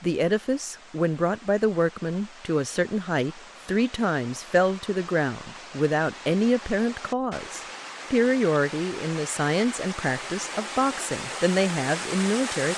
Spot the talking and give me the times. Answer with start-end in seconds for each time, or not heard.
0.0-12.7.